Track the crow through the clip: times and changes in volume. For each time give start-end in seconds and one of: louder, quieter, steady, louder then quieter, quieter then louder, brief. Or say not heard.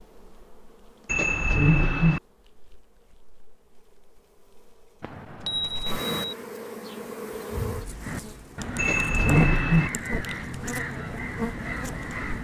8.0-12.3 steady.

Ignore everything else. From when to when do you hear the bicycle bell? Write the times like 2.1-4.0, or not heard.
1.1-2.2, 5.0-6.3, 8.8-9.9.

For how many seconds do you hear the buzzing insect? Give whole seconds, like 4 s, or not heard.
12 s.